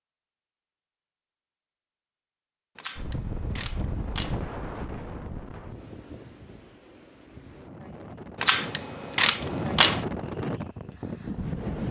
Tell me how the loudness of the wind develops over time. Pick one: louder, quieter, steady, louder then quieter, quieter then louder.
quieter then louder.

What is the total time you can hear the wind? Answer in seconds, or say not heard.
9 s.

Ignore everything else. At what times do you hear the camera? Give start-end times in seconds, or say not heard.
2.8-4.4, 8.4-10.1.